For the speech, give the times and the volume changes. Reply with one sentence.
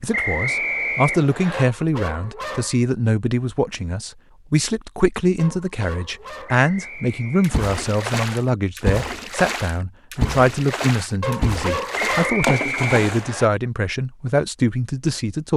The speech can be heard from 0.0 to 15.5 s, at a steady volume.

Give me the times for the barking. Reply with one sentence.
You can hear the barking from 1.5 to 2.9 s, from 5.3 to 6.7 s and from 11.2 to 12.5 s.